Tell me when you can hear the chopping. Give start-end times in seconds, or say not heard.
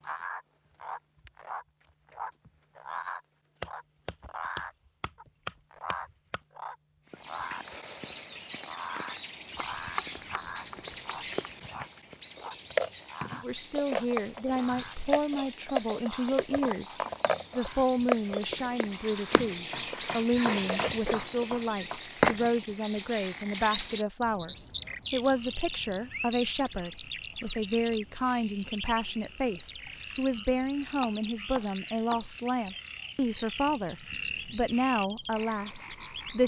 3.6-6.4, 9.8-11.3, 19.5-22.0, 30.6-32.2.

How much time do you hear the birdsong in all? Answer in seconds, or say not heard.
29 s.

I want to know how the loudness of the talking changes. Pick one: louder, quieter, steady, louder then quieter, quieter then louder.
steady.